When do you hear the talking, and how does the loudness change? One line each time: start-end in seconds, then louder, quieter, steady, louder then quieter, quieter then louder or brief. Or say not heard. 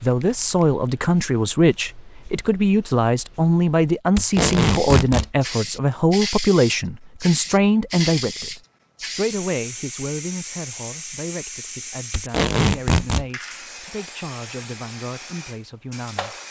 0.0-16.4 quieter.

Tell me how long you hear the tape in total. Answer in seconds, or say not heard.
2 s.